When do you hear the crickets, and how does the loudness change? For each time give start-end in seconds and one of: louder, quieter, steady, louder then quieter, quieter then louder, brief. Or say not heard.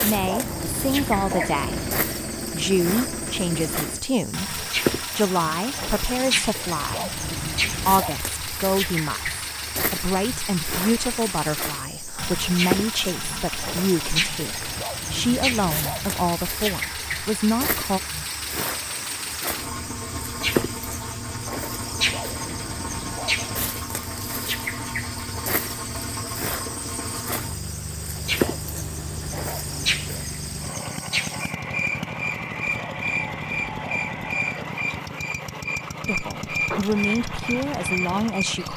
0.0-38.6 steady.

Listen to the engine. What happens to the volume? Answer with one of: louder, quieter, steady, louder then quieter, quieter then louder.
steady.